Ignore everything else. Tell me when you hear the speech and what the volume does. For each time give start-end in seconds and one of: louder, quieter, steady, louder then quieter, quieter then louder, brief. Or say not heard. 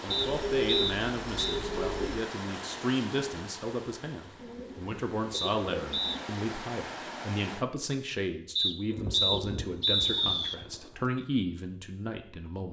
0.0-12.6 steady.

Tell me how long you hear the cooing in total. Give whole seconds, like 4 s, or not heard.
6 s.